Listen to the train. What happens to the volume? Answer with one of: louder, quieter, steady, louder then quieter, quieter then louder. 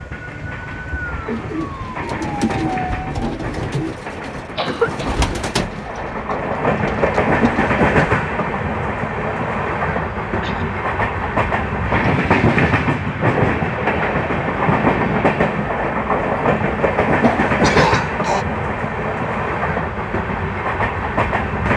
louder.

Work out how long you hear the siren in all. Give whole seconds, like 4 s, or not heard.
3 s.